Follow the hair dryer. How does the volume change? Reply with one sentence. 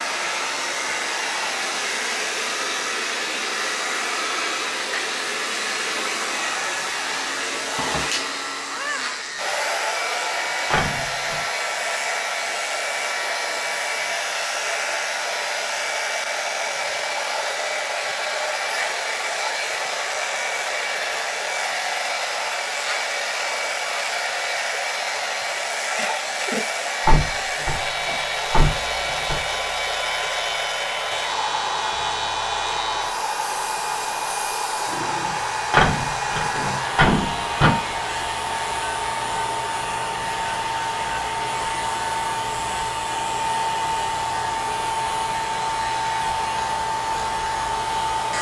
The loudness of the hair dryer stays about the same.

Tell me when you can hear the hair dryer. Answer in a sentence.
You can hear the hair dryer from 0.0 to 48.3 s.